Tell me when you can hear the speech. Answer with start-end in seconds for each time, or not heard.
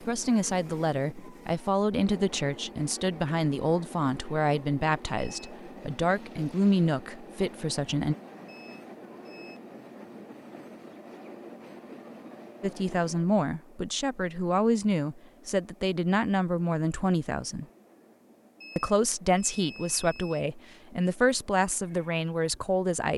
0.0-8.2, 12.6-17.6, 18.8-23.1.